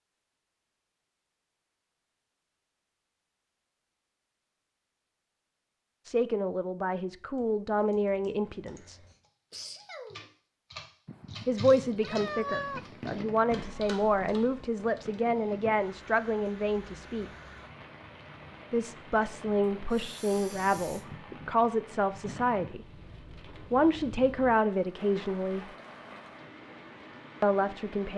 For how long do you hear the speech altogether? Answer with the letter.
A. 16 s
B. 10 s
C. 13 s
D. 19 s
A.